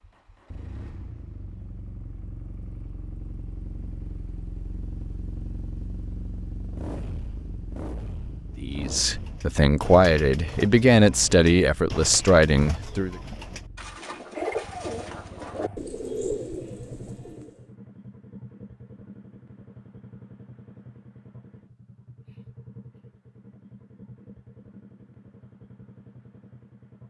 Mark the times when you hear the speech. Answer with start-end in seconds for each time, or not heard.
8.6-13.2.